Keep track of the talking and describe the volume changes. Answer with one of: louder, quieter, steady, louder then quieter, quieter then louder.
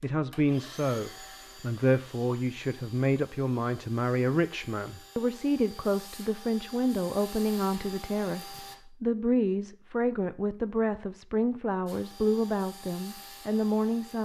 steady.